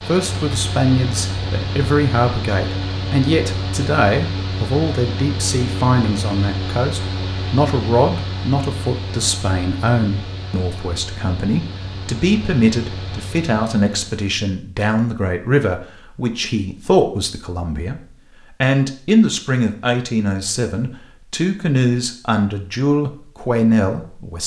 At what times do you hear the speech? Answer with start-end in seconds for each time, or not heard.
0.1-18.0, 18.6-24.4.